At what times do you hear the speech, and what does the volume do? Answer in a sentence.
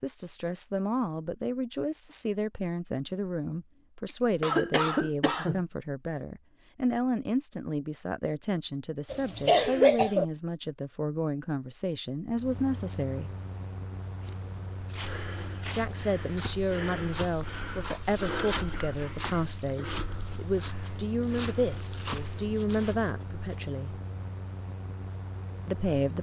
The speech can be heard from 0.0 to 13.3 s, at a steady volume; from 15.7 to 24.0 s, at a steady volume; and briefly from 25.6 to 26.1 s.